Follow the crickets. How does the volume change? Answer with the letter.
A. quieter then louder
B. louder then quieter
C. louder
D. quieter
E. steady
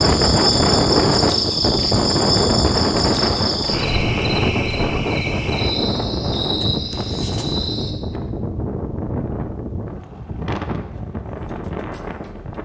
D.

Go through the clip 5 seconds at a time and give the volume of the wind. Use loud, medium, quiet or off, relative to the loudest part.
loud, medium, medium.